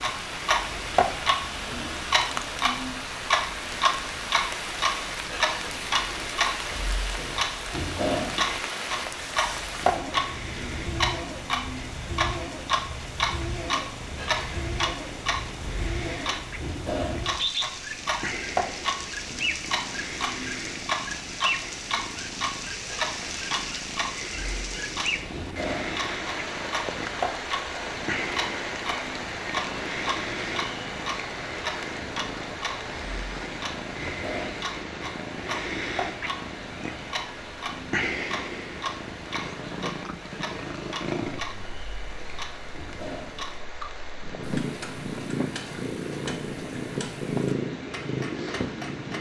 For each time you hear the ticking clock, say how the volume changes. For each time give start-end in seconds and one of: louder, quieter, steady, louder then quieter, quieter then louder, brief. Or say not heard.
0.0-49.1 quieter.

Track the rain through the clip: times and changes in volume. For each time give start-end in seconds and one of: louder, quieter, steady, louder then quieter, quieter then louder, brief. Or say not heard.
0.0-49.1 quieter.